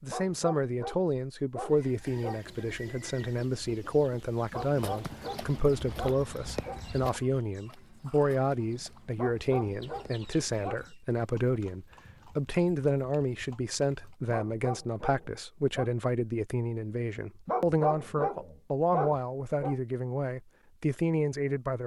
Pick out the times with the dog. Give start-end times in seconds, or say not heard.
0.1-2.4, 4.5-6.8, 9.2-10.8, 14.3-15.9, 17.4-19.8.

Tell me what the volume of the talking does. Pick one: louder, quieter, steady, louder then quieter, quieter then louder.
steady.